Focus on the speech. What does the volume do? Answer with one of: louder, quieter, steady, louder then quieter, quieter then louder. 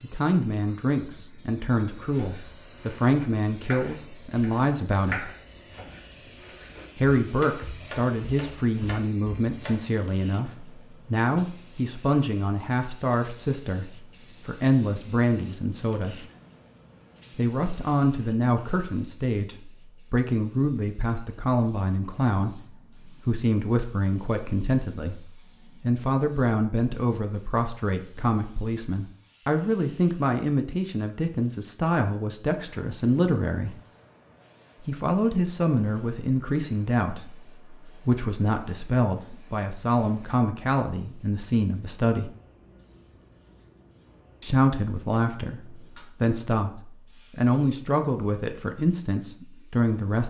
steady.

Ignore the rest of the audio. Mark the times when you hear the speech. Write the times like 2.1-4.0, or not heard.
0.0-5.3, 7.0-16.2, 17.4-33.8, 34.9-42.3, 44.4-50.2.